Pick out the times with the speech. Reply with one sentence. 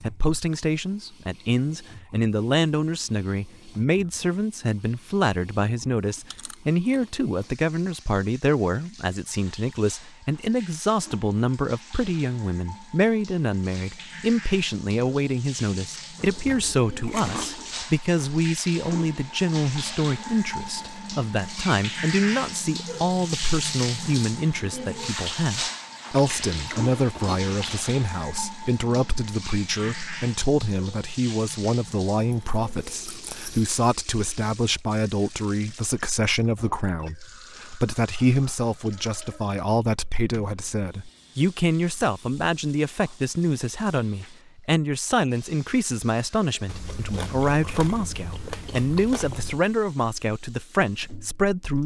You can hear the speech from 0.0 to 51.8 s.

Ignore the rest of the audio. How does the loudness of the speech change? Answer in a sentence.
The loudness of the speech stays about the same.